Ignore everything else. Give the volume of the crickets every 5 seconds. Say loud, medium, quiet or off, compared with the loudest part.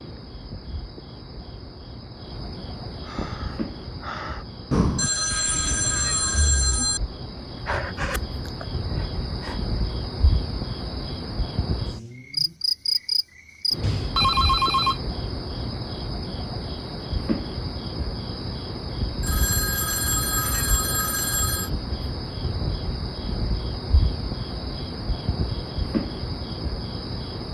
medium, medium, loud, loud, loud, loud.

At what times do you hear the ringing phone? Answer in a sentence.
The ringing phone can be heard from 5.0 to 7.0 s, from 13.8 to 15.0 s and from 19.2 to 21.7 s.